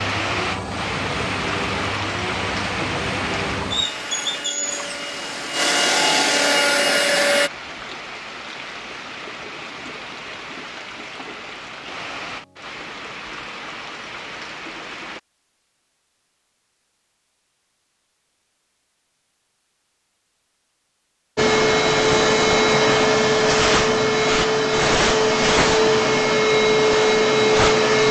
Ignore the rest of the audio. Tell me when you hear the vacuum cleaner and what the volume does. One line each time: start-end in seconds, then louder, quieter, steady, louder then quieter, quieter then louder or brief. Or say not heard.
0.0-7.5 louder
21.4-28.0 steady.